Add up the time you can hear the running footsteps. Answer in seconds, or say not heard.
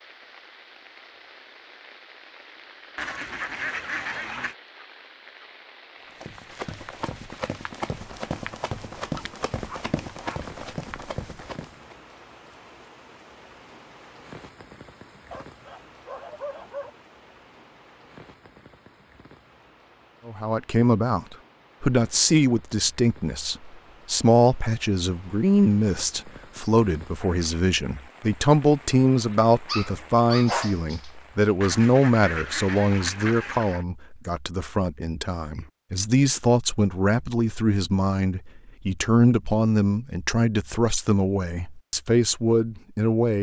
6 s.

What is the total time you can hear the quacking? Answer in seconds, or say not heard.
4 s.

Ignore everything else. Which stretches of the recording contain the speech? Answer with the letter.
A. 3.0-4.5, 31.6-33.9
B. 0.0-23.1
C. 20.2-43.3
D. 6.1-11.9
C.